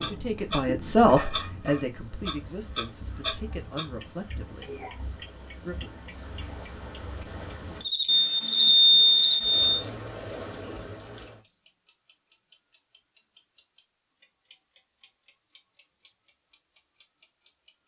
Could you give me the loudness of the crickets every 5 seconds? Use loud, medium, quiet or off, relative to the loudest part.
quiet, loud, loud, off.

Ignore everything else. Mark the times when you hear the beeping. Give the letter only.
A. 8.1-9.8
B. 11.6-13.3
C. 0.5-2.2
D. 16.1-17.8
A.